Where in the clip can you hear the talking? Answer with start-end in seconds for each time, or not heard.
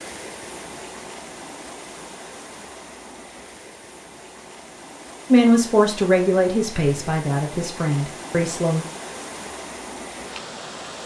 5.3-8.8.